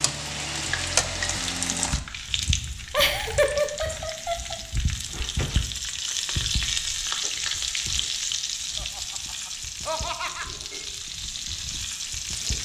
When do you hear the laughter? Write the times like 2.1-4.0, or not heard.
2.9-4.6, 8.8-10.5.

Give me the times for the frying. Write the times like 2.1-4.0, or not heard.
0.0-12.5.